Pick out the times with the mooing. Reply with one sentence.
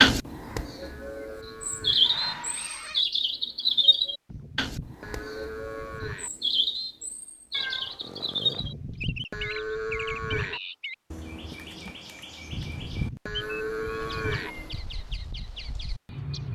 You can hear the mooing from 0.1 to 2.1 s, from 4.2 to 6.3 s, from 8.6 to 10.6 s and from 12.5 to 14.6 s.